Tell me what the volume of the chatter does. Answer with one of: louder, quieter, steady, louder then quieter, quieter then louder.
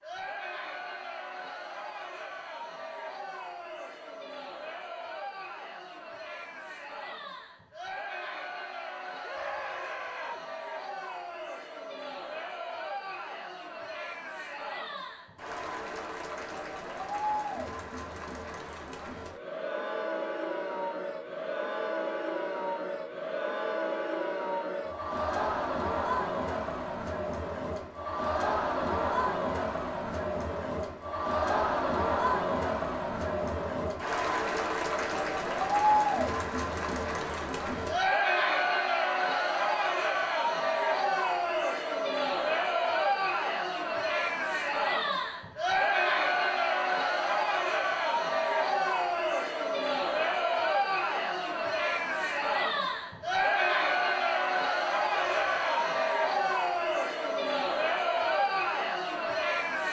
louder.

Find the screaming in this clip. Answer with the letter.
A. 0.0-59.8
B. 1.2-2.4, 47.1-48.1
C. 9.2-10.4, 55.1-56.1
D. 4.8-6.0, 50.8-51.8
C.